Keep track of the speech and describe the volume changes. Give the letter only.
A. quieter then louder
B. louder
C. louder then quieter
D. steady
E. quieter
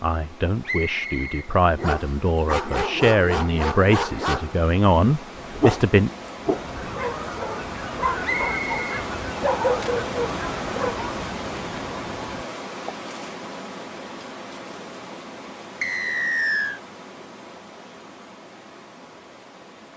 B.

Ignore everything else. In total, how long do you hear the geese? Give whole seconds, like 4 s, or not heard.
6 s.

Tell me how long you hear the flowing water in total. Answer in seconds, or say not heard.
20 s.